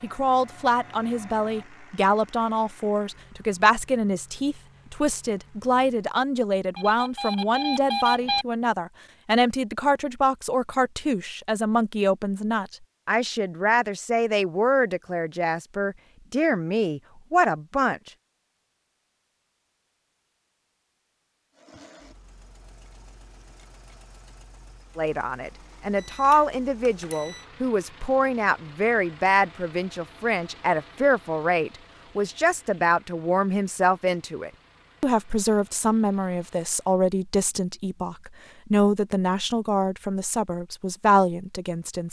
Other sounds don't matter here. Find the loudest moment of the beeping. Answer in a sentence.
The volume of the beeping peaks at 8 seconds.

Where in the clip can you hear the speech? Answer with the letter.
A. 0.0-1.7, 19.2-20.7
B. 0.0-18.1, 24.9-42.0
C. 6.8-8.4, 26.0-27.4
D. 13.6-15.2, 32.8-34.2
B.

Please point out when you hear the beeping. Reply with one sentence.
You can hear the beeping from 6.8 to 8.4 s and from 26.0 to 27.4 s.